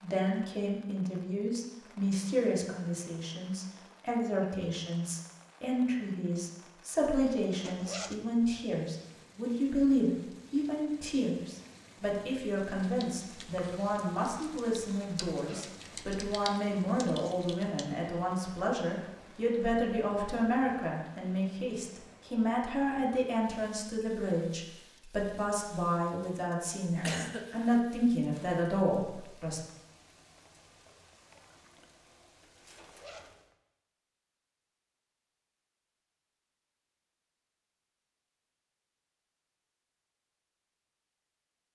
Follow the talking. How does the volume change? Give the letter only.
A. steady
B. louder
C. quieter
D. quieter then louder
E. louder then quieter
A.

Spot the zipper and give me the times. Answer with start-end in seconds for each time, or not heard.
7.6-8.2, 15.3-15.8, 32.8-33.4.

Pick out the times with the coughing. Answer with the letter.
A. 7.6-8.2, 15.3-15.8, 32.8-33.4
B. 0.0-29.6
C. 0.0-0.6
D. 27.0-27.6
D.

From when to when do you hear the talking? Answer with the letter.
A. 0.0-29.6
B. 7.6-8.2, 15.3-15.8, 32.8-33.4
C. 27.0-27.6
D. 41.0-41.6
A.